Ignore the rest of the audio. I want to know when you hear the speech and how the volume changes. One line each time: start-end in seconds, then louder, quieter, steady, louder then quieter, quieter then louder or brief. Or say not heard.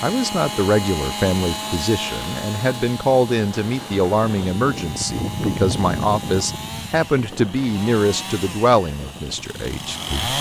0.0-10.3 steady.